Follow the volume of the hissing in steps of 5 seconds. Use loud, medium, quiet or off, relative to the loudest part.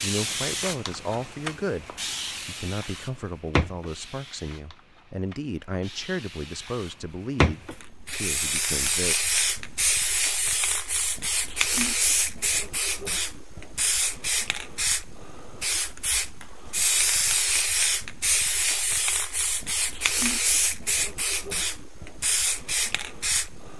medium, loud, loud, loud, loud.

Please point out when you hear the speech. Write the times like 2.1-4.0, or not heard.
0.0-9.2.